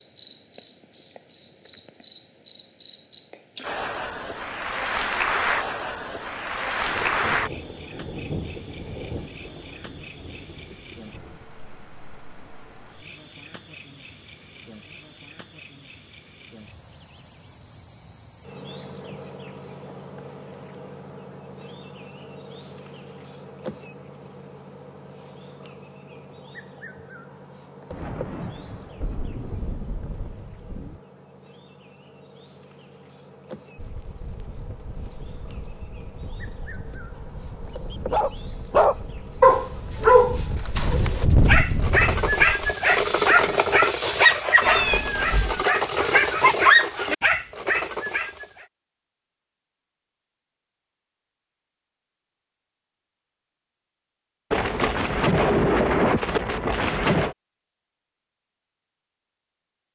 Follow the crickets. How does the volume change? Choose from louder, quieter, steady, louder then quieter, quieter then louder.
quieter.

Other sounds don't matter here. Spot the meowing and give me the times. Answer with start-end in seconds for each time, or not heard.
44.6-45.6.